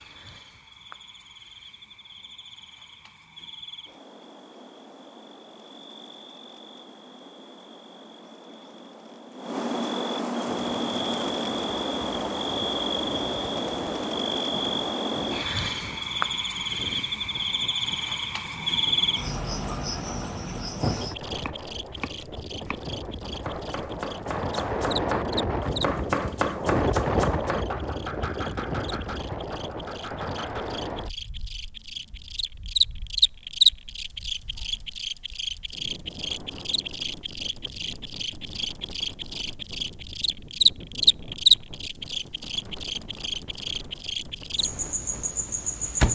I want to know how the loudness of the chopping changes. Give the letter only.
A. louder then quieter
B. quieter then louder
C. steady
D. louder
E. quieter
A.